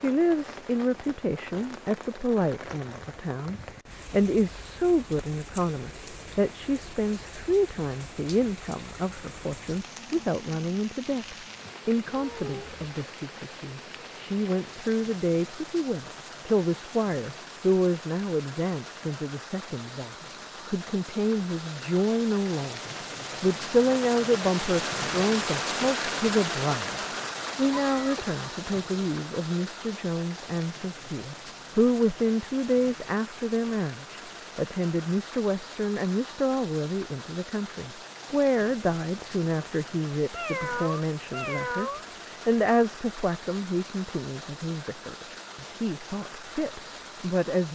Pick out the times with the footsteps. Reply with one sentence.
The footsteps can't be heard in this clip.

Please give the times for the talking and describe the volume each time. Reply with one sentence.
The talking can be heard from 0.0 to 47.7 s, at a steady volume.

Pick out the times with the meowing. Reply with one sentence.
The meowing can be heard from 12.1 to 12.8 s, from 27.8 to 28.9 s and from 40.3 to 42.0 s.